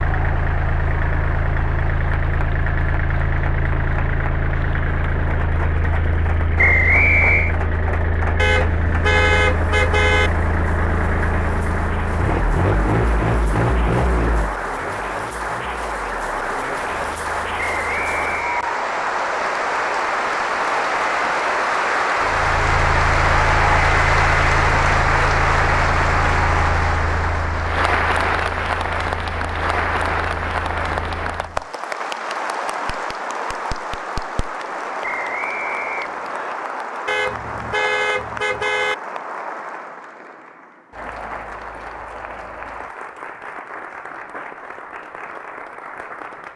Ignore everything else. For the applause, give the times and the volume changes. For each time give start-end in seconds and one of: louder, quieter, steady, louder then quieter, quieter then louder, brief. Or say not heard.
0.0-46.5 louder then quieter.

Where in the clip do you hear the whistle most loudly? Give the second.
7 s.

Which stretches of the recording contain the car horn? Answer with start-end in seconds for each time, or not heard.
8.3-10.3, 37.0-39.0.